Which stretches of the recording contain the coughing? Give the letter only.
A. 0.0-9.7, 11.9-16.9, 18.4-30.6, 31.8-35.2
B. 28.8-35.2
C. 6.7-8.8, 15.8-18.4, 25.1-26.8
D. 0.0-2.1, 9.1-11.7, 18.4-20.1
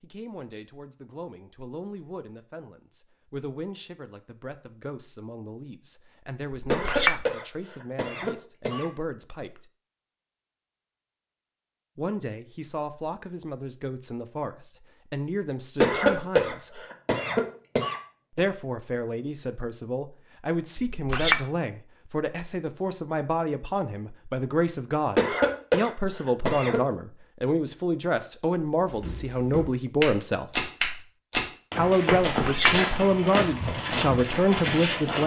C.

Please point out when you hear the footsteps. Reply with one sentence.
You can hear the footsteps from 28.8 to 35.2 s.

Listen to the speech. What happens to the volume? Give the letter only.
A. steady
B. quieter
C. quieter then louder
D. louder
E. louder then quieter
D.